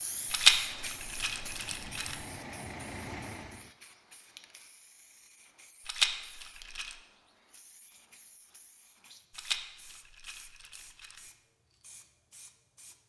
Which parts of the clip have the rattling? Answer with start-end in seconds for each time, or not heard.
0.3-2.1, 5.8-7.0, 9.3-11.2.